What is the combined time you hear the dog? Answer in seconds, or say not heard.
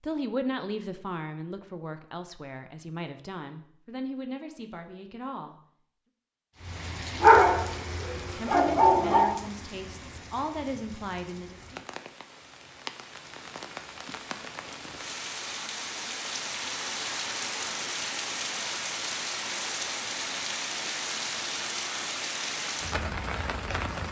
2 s.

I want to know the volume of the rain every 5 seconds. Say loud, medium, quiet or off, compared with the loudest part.
off, medium, medium, loud, loud.